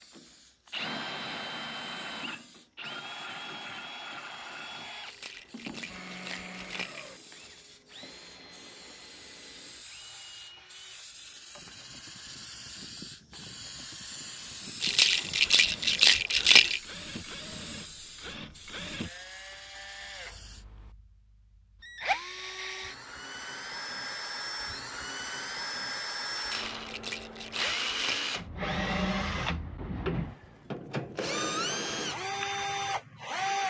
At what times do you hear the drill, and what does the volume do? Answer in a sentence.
You can hear the drill from 0.0 to 33.6 s, getting quieter then louder.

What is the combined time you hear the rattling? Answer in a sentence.
You can hear the rattling for 6 seconds altogether.